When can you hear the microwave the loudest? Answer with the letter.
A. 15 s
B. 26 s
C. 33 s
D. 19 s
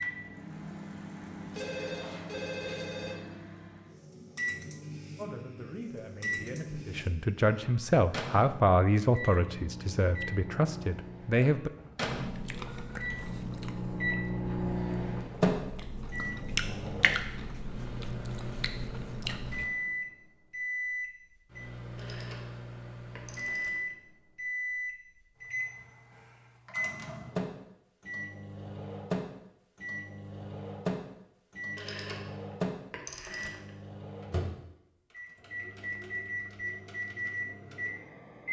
A.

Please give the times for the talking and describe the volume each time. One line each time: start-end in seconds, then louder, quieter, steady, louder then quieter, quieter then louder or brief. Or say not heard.
5.2-11.7 louder then quieter.